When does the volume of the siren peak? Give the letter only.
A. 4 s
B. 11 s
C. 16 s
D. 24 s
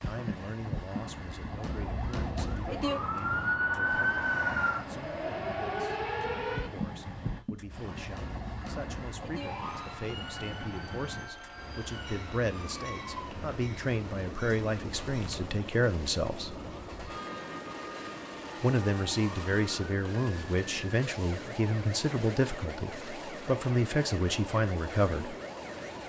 A.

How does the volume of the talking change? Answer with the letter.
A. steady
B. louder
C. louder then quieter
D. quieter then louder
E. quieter
B.